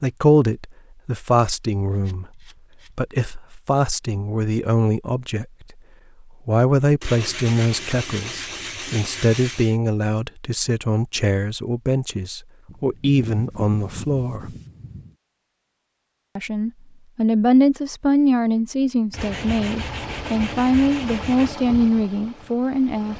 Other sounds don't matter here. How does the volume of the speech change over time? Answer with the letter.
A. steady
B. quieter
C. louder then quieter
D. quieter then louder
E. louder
A.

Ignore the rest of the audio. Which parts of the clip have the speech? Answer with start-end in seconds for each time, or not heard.
0.0-5.8, 6.5-14.6, 16.4-23.1.